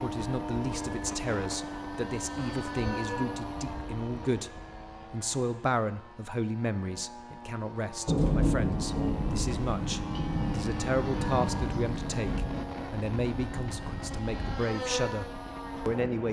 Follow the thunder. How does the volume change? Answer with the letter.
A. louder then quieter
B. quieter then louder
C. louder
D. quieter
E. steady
D.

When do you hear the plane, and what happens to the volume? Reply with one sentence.
You can hear the plane from 0.0 to 16.2 s, getting quieter then louder.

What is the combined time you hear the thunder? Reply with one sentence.
You can hear the thunder for 5 seconds altogether.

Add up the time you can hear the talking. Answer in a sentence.
The talking can be heard for 16 seconds in total.